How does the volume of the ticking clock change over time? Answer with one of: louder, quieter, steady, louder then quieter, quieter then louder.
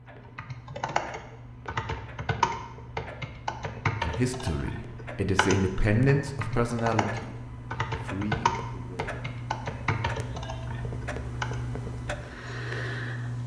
louder.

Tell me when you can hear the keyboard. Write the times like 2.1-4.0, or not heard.
0.2-11.6.